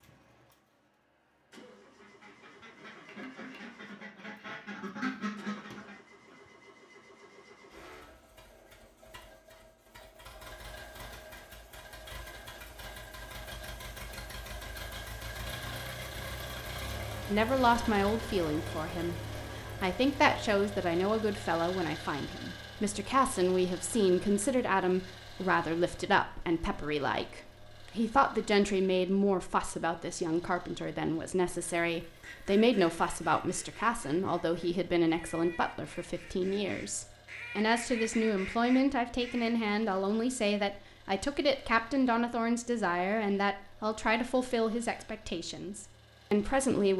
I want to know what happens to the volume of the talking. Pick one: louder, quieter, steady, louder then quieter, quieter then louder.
steady.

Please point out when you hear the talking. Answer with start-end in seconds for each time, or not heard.
17.3-46.9.